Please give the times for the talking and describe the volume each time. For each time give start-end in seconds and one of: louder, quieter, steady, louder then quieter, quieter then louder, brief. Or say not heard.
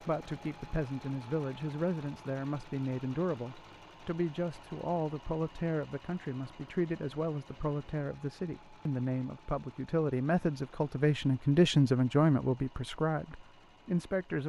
0.0-14.4 louder.